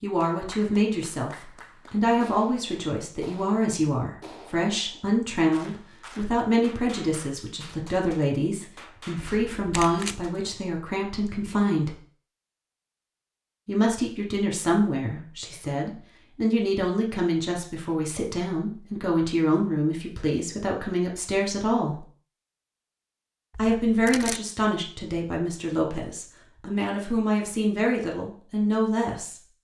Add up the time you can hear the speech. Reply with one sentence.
You can hear the speech for 26 seconds altogether.